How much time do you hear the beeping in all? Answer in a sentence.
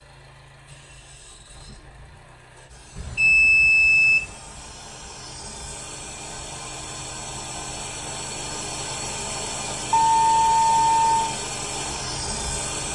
The beeping can be heard for 3 seconds in total.